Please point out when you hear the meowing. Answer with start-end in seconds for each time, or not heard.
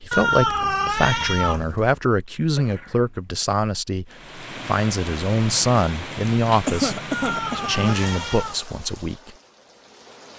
0.1-1.9, 7.1-8.6.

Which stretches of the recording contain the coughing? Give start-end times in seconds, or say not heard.
2.5-3.3, 6.7-7.8.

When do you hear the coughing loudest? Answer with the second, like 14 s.
7 s.